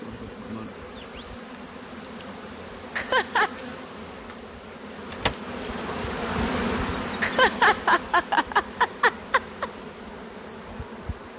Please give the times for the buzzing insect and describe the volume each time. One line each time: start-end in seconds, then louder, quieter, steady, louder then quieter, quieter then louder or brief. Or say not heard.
0.0-11.3 louder then quieter.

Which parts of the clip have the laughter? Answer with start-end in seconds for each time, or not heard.
3.0-3.5, 7.2-9.7.